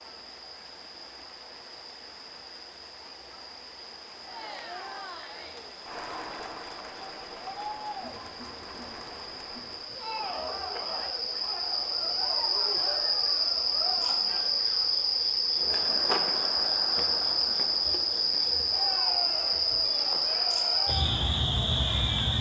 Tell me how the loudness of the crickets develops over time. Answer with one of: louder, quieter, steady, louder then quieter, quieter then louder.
louder.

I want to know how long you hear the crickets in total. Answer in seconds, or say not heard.
22 s.